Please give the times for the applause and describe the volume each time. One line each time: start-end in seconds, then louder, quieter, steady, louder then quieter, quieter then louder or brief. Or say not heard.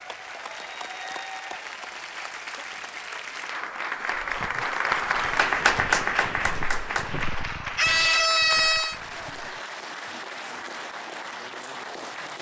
0.0-12.3 louder then quieter.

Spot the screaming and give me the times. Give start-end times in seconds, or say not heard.
7.8-9.0.